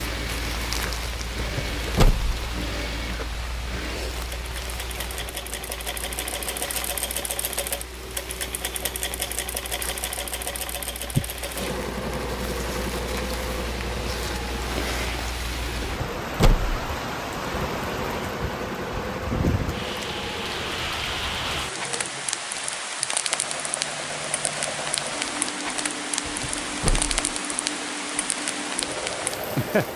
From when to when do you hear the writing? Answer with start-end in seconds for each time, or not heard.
not heard.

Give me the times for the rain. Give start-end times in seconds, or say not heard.
0.0-29.9.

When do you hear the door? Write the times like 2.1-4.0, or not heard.
1.4-2.5, 15.8-16.8, 26.2-27.4.